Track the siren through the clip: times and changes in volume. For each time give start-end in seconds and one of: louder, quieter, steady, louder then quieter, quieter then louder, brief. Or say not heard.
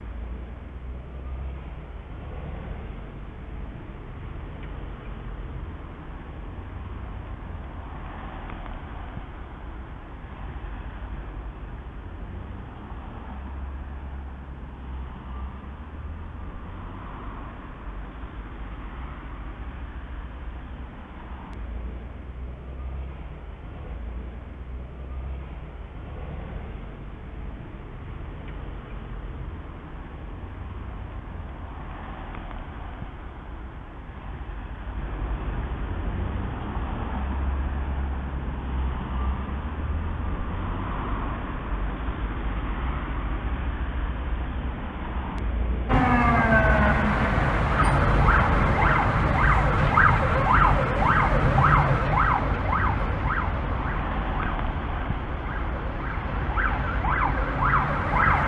45.9-58.4 quieter then louder.